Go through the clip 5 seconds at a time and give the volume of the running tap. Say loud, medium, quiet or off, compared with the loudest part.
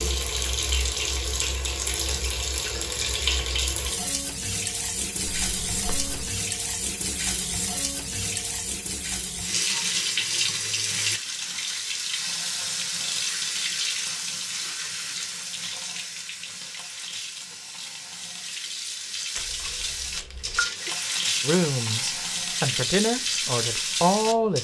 loud, loud, loud, medium, loud.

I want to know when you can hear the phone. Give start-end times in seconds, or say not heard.
5.2-6.3, 19.4-20.7.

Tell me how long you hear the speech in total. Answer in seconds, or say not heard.
3 s.